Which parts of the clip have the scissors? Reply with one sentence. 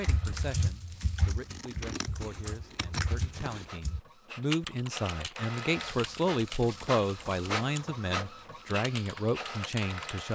You can hear the scissors from 1.2 to 3.8 s.